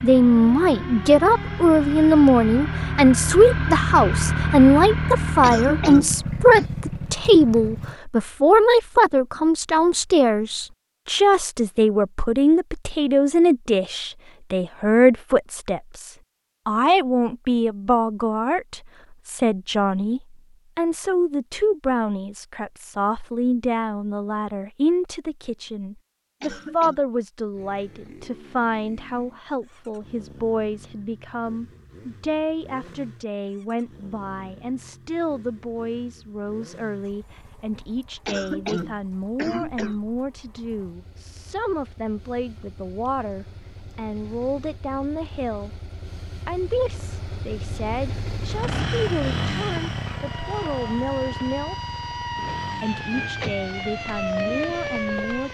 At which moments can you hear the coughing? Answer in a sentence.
The coughing can be heard from 5.4 to 6.7 s, from 26.4 to 27.0 s and from 38.2 to 40.0 s.